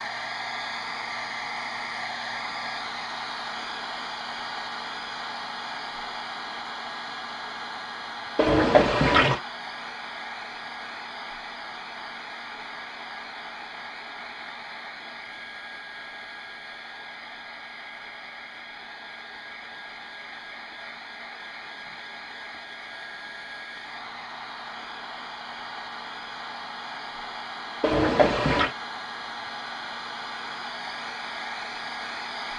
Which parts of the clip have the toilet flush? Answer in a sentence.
The toilet flush can be heard from 8.3 to 9.4 s and from 27.8 to 28.7 s.